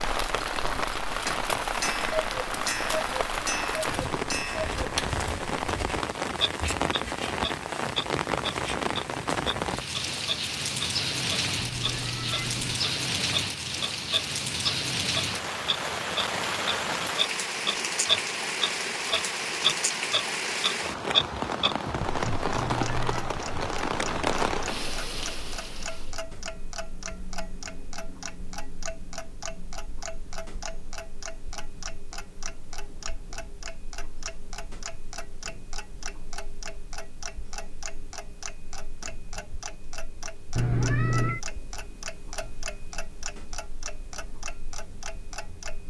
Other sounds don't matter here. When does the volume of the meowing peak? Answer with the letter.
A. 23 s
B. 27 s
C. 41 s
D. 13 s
C.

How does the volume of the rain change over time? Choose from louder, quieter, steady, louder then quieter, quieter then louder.
steady.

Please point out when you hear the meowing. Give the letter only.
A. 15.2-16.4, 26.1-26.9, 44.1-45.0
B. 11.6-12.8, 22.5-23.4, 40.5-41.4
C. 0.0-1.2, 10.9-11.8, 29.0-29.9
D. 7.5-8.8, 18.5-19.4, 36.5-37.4
B.